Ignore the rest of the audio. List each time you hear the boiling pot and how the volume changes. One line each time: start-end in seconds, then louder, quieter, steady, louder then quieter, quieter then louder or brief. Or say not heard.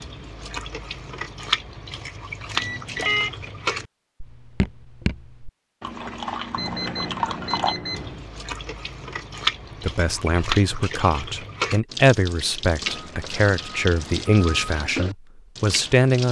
not heard.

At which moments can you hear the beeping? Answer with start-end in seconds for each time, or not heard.
2.5-3.3, 6.5-8.2, 12.8-14.8.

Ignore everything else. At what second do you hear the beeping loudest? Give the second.
3 s.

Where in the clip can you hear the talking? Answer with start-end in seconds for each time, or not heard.
9.8-16.2.